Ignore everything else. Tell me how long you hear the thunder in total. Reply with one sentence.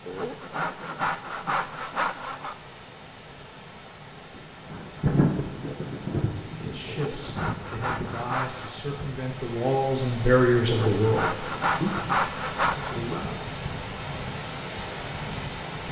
The thunder can be heard for 4 seconds in total.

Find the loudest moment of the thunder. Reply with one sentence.
The loudest moment of the thunder is at 5 seconds.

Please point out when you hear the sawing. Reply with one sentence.
You can hear the sawing from 0.1 to 2.5 s, from 6.8 to 8.8 s and from 10.7 to 12.9 s.